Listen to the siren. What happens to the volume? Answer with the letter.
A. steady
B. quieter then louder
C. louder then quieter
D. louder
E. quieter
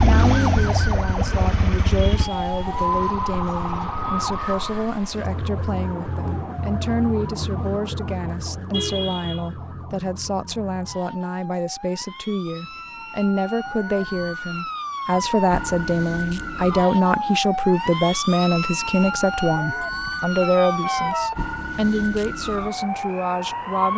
B.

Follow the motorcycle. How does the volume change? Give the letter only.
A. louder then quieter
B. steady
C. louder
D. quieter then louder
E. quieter
E.